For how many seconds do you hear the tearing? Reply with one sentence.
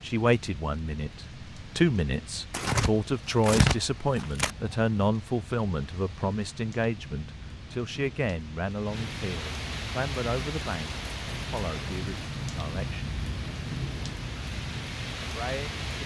The tearing can be heard for 2 seconds in total.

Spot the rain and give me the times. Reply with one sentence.
The rain can be heard from 0.0 to 16.0 s.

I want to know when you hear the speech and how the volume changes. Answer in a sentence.
You can hear the speech from 0.0 to 13.1 s, getting quieter; and briefly from 15.2 to 15.9 s.